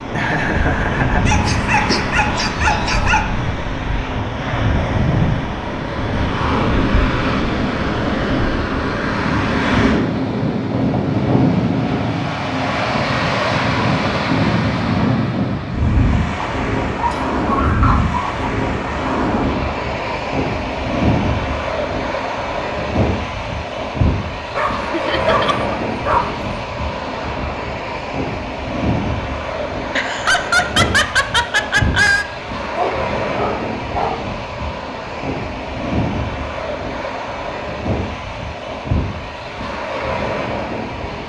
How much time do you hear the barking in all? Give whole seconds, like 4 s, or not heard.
7 s.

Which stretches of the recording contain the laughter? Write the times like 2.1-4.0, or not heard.
0.1-2.1, 24.9-25.8, 29.9-32.2.